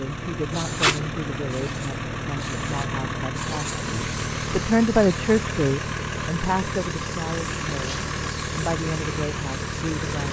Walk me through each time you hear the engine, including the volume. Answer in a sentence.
The engine can be heard from 0.0 to 10.2 s, at a steady volume.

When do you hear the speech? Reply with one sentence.
You can hear the speech from 0.0 to 10.2 s.